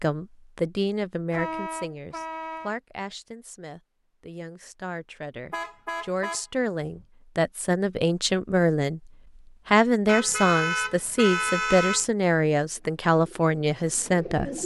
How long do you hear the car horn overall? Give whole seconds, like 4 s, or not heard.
5 s.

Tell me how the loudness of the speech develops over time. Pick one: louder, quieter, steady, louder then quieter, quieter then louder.
quieter then louder.